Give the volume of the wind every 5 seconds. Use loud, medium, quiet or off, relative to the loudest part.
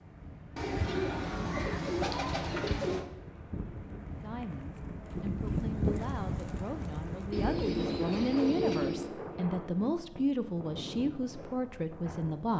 medium, loud, medium.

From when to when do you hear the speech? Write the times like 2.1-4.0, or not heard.
4.1-12.5.